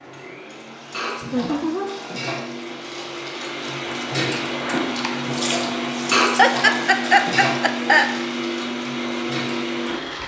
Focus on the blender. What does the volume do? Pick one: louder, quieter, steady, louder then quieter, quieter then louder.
louder.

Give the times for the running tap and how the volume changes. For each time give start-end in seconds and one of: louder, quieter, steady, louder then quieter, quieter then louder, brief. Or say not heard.
0.0-10.2 louder then quieter.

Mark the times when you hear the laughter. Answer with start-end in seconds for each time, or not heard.
1.2-1.9, 6.3-8.1.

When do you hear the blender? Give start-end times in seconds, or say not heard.
0.0-10.2.